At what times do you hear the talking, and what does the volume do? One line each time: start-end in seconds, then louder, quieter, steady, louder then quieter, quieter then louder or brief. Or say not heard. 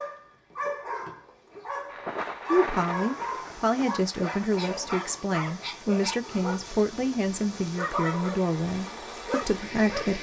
2.5-10.1 steady.